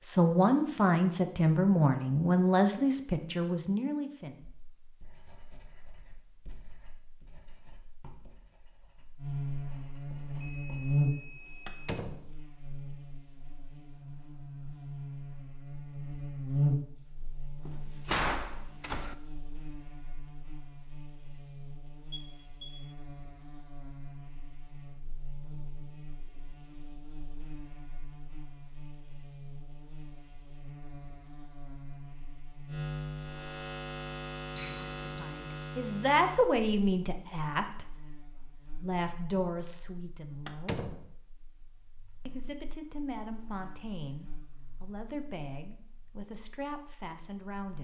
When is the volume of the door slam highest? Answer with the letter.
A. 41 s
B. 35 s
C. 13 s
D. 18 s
D.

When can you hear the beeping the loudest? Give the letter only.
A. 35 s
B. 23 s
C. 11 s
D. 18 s
A.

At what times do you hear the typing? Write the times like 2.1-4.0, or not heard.
not heard.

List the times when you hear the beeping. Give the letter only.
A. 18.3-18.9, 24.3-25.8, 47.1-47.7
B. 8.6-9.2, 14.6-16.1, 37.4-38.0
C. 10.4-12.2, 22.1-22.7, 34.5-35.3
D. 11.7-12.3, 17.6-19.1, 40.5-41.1
C.